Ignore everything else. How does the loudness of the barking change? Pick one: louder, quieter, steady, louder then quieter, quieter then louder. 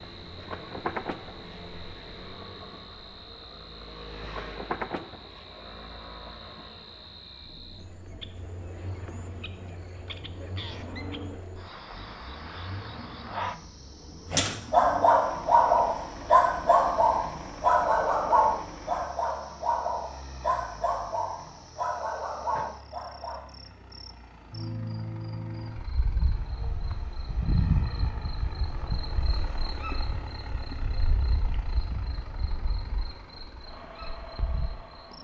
quieter.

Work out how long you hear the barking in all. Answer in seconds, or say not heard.
9 s.